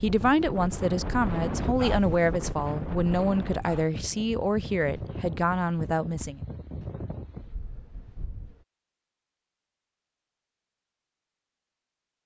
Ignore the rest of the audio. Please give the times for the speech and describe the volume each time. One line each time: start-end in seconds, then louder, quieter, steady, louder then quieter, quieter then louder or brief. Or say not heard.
0.0-6.4 steady.